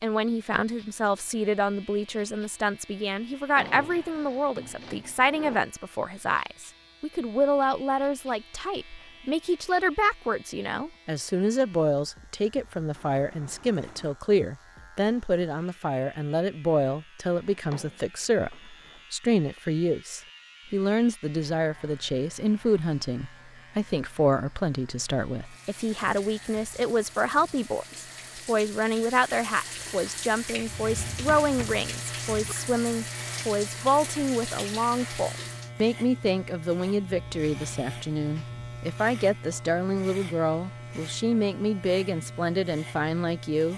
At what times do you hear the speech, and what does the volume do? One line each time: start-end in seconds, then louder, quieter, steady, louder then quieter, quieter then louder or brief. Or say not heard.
0.0-43.7 steady.